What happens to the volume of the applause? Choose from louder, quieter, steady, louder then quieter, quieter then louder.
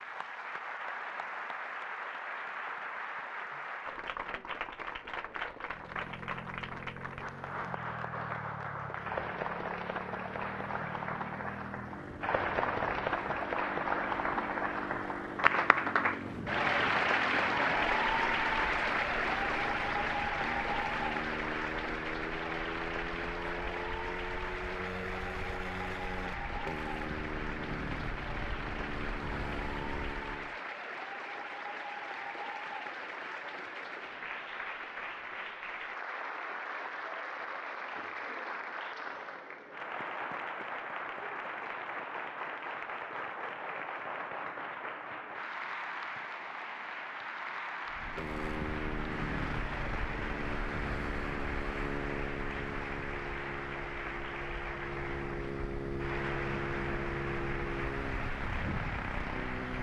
louder then quieter.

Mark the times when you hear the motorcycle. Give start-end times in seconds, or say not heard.
5.5-30.6, 47.9-59.7.